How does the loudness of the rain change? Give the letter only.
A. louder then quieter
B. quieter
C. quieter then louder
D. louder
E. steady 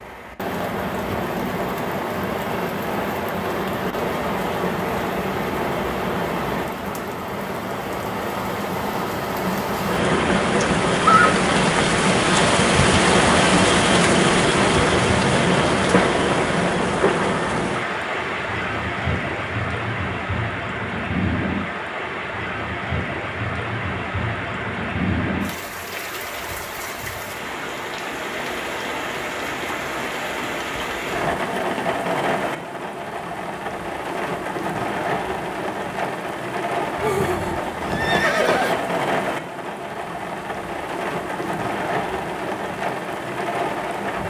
A.